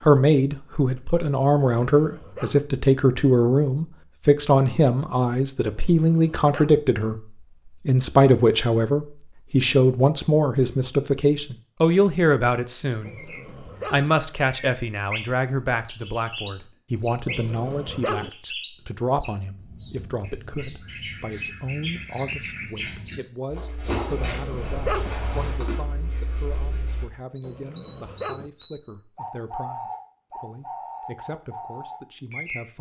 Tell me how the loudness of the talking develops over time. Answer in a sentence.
The volume of the talking goes down.